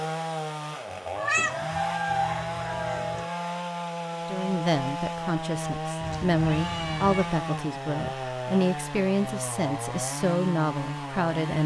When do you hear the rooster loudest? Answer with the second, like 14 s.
2 s.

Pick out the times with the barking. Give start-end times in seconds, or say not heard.
not heard.